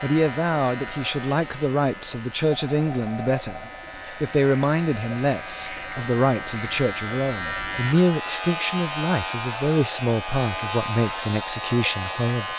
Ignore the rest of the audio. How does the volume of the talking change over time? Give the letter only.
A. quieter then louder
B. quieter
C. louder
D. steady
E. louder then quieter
D.